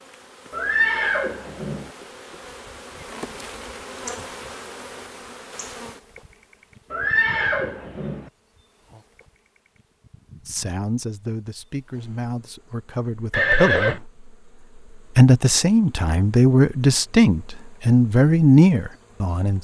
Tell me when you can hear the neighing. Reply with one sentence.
The neighing can be heard from 0.5 to 1.9 s, from 6.9 to 8.2 s and from 13.3 to 14.0 s.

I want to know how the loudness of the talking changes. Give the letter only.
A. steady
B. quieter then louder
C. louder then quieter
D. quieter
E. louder
E.